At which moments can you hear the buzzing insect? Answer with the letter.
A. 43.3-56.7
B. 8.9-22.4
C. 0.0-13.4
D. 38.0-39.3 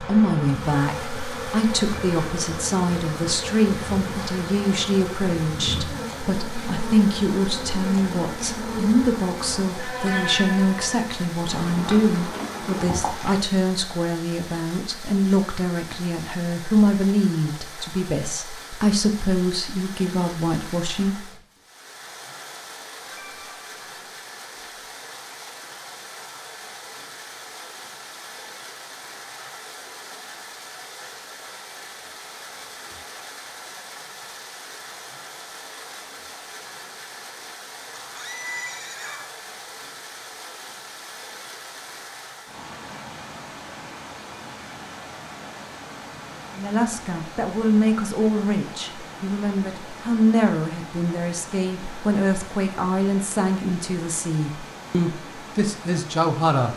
C.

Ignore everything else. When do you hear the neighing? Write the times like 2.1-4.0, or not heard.
38.0-39.3.